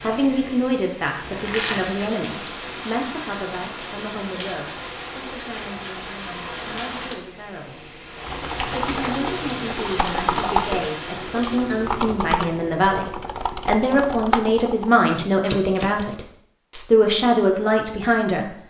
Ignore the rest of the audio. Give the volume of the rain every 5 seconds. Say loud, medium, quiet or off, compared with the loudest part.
loud, loud, loud, off.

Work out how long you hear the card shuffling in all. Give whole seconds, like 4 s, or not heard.
4 s.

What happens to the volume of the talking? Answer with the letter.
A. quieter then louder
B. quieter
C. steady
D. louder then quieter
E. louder
A.